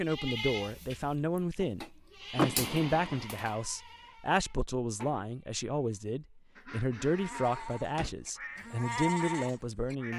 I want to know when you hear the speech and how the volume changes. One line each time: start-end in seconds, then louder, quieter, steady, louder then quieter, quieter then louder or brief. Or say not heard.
0.0-10.1 steady.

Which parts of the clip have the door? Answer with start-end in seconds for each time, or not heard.
2.4-3.2, 7.5-8.2.